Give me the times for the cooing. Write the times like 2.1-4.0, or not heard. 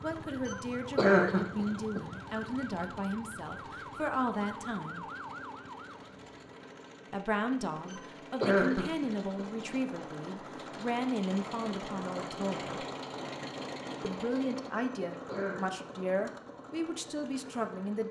not heard.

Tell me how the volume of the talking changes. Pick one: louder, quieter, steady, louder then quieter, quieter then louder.
steady.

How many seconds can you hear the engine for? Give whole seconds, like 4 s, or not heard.
18 s.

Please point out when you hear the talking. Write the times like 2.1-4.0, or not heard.
0.0-5.0, 7.1-12.8, 14.0-18.0.